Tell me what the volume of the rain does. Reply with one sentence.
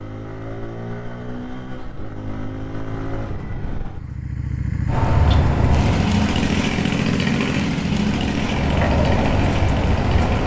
The volume of the rain goes down, then up.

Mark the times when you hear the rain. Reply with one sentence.
The rain can be heard from 4.8 to 10.4 s.